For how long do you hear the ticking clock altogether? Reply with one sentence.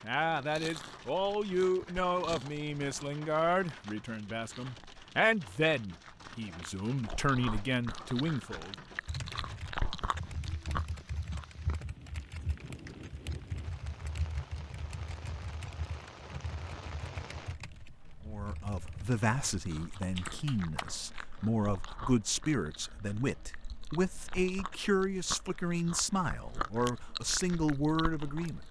You can't hear the ticking clock here.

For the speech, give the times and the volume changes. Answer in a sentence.
The speech can be heard from 0.0 to 8.8 s, getting quieter then louder; and from 18.2 to 28.6 s, at a steady volume.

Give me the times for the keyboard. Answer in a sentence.
You can hear the keyboard from 9.1 to 20.9 s.